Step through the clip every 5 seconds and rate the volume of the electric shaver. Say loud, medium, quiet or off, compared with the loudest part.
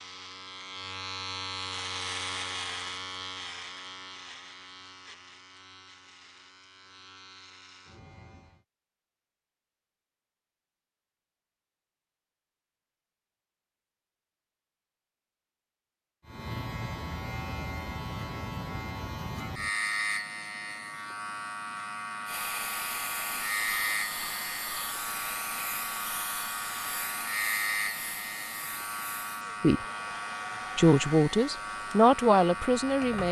loud, quiet, off, loud, loud, loud, loud.